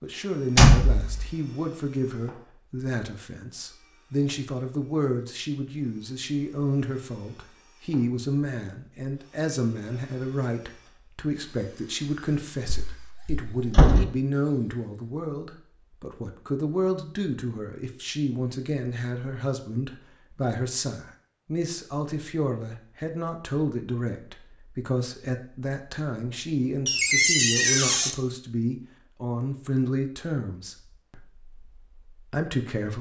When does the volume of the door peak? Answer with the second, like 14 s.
1 s.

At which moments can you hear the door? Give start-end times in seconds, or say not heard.
0.6-1.3, 12.7-14.1, 26.9-28.1.